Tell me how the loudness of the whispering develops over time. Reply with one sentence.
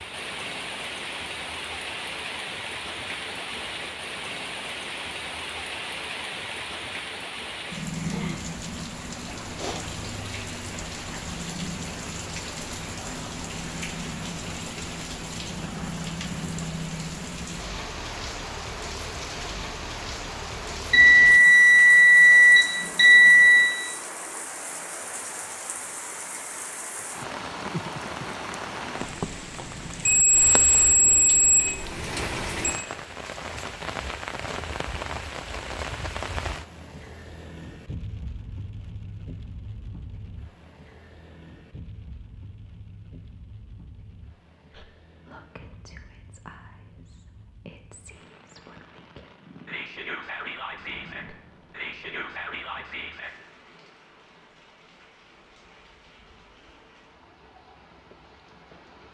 The loudness of the whispering goes up.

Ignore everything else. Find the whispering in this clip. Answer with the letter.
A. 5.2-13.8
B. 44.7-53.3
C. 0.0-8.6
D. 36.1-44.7
B.